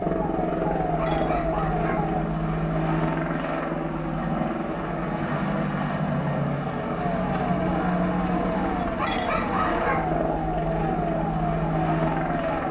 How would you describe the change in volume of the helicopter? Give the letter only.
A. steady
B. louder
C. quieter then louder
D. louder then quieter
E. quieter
A.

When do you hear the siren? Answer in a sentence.
You can hear the siren from 0.0 to 2.2 s and from 7.0 to 12.6 s.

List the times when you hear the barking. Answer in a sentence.
You can hear the barking from 0.9 to 2.3 s and from 8.9 to 10.3 s.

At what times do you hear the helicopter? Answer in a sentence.
You can hear the helicopter from 0.0 to 12.6 s.